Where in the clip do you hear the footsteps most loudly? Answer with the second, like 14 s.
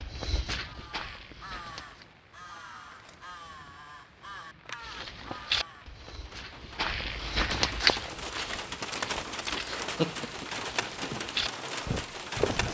8 s.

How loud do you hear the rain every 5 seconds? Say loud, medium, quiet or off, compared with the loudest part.
quiet, loud, loud.